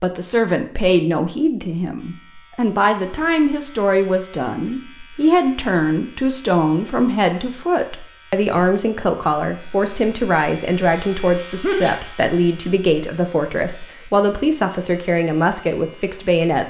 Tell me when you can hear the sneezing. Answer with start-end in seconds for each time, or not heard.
11.6-12.1.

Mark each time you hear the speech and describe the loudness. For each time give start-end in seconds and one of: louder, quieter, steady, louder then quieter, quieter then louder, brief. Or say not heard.
0.0-16.6 steady.